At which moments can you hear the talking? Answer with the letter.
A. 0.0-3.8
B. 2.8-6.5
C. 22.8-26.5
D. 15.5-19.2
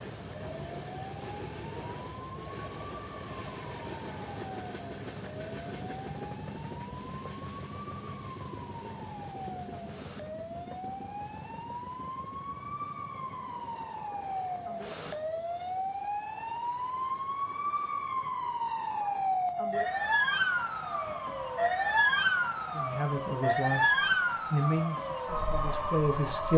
C.